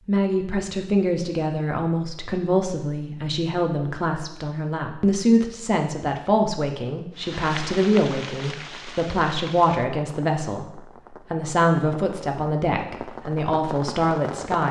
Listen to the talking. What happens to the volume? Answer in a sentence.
The loudness of the talking stays about the same.